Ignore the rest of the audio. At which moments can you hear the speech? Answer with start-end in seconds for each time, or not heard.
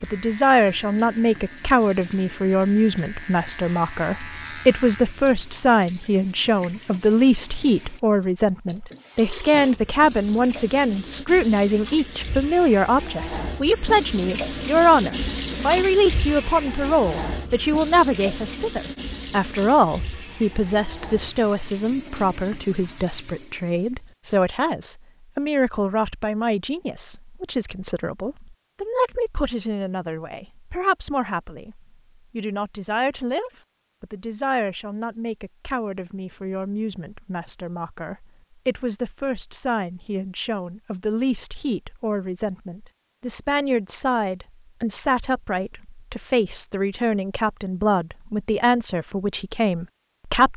0.0-50.5.